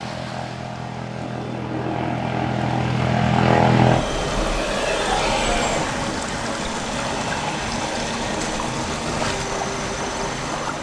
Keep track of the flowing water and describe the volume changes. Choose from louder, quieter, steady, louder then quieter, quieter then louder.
louder.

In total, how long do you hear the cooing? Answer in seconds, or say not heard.
2 s.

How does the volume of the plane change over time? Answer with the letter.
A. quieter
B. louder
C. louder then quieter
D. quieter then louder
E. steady
C.